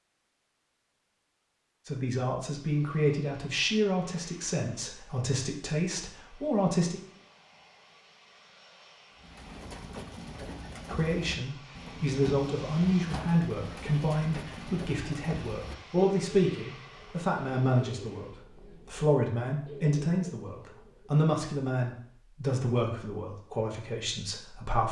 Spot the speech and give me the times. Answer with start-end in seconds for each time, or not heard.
1.9-7.0, 10.8-24.8.